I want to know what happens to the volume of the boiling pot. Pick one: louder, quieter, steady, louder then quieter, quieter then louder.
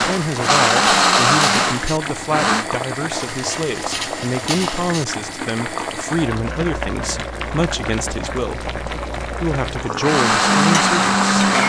steady.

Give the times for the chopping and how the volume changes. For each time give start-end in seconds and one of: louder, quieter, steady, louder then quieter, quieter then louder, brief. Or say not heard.
not heard.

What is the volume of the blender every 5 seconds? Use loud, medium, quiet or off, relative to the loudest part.
loud, off, loud.